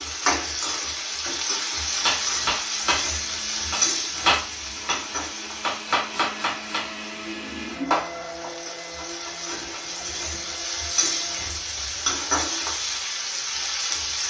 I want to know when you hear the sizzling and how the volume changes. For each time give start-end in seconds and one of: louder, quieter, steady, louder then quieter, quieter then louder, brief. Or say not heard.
0.0-14.2 quieter then louder.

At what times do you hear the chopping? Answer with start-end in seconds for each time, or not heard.
1.9-10.6.